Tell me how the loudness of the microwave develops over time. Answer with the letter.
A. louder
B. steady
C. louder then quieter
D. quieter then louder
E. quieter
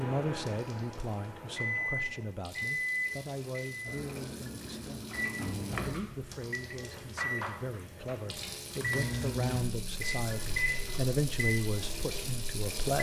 B.